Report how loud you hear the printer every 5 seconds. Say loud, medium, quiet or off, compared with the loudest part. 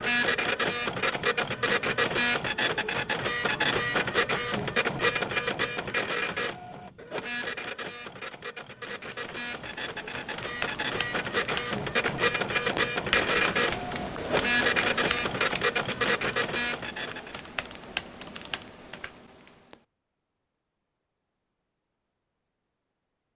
loud, medium, loud, loud, off.